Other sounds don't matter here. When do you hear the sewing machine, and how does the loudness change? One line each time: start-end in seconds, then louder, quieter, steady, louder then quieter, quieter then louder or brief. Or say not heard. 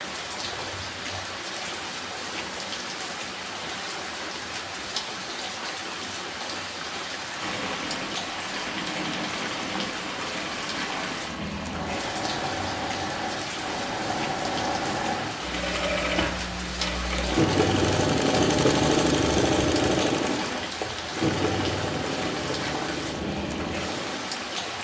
7.3-24.8 louder then quieter.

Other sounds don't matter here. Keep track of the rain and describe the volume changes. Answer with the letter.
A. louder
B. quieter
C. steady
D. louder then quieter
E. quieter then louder
C.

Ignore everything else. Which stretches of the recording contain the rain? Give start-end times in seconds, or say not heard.
0.0-24.8.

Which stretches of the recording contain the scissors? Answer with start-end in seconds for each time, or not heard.
not heard.